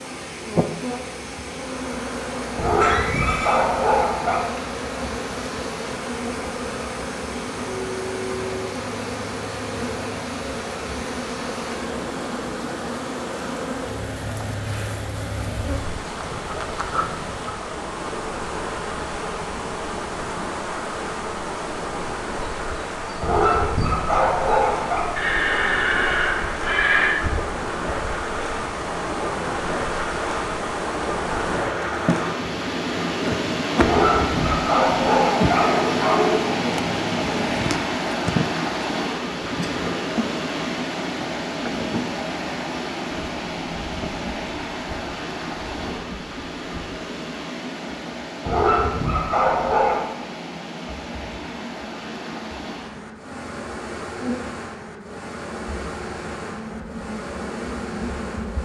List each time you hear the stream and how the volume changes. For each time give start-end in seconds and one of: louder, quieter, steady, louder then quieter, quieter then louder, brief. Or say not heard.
0.0-58.6 louder then quieter.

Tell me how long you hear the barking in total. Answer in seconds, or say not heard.
8 s.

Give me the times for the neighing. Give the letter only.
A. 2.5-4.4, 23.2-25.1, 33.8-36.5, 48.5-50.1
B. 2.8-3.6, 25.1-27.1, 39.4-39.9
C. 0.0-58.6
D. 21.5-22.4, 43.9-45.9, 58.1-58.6
B.